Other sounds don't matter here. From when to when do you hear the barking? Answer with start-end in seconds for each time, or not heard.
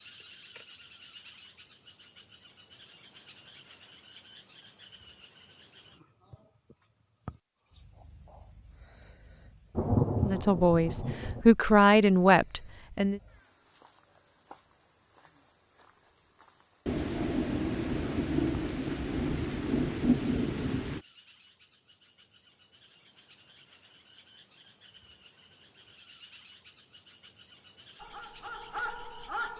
27.9-29.5.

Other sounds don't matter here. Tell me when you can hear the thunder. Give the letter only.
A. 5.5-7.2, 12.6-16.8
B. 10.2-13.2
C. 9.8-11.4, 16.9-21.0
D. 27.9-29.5
C.